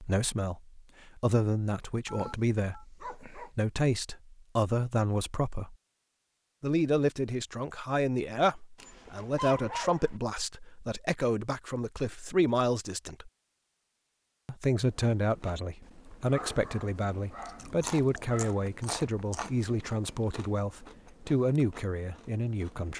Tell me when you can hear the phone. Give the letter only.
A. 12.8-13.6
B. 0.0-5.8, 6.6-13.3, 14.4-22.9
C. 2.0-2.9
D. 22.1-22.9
C.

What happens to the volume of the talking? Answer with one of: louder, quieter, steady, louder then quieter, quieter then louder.
steady.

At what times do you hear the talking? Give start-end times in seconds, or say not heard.
0.0-5.8, 6.6-13.3, 14.4-22.9.